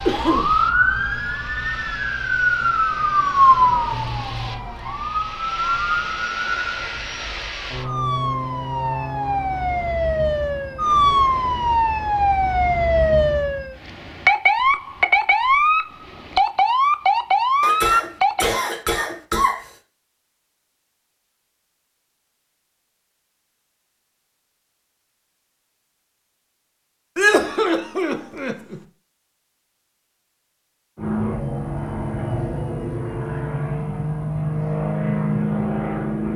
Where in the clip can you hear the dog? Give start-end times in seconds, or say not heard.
not heard.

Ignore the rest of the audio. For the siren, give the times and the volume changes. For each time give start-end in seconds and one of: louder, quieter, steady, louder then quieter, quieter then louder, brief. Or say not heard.
0.0-18.4 quieter then louder.